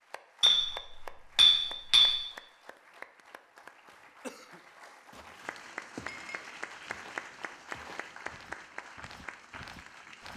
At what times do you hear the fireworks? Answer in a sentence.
You can't hear the fireworks here.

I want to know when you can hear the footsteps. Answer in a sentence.
You can hear the footsteps from 5.1 to 10.3 s.